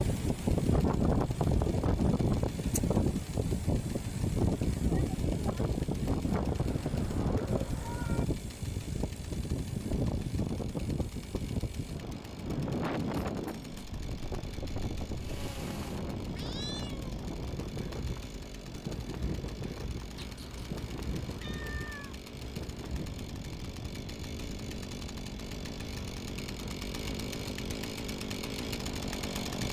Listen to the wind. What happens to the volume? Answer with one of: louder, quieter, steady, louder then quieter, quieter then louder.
quieter.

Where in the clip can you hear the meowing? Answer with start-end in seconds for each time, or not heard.
6.2-8.2, 16.4-17.1, 20.1-22.1.